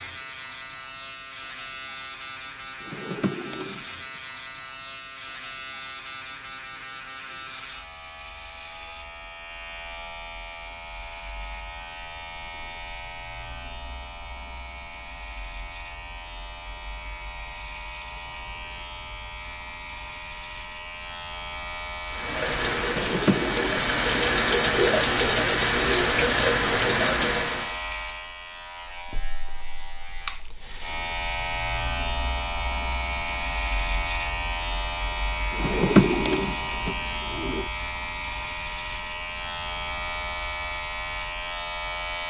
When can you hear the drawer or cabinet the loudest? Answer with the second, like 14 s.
36 s.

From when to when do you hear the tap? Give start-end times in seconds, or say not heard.
22.1-27.8.